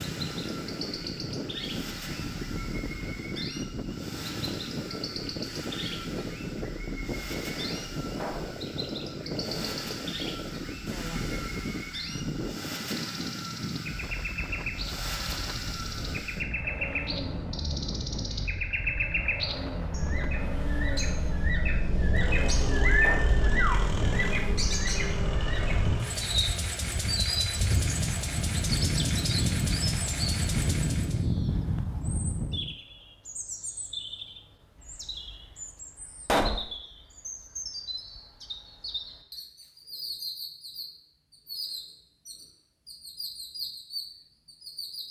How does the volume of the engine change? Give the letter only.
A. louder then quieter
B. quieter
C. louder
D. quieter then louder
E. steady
C.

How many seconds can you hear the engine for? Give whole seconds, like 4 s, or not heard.
31 s.